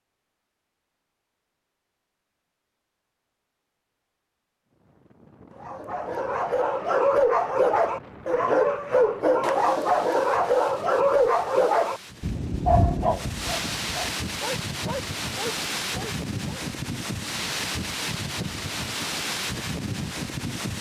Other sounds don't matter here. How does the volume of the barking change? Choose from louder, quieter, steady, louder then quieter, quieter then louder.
quieter.